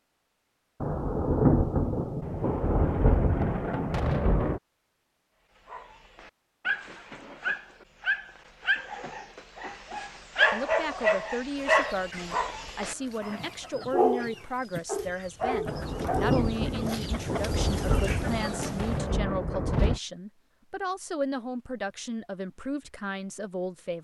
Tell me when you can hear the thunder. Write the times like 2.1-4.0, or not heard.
0.8-4.6, 15.7-20.0.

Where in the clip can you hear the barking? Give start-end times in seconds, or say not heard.
5.7-17.1.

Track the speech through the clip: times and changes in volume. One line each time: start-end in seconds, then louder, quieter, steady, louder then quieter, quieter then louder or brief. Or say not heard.
10.5-23.9 steady.